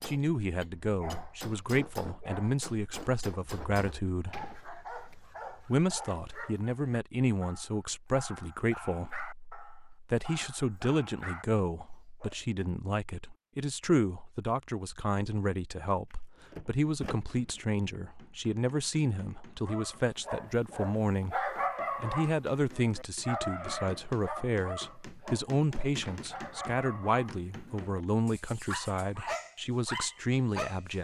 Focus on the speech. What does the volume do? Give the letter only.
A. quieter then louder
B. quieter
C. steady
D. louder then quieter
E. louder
C.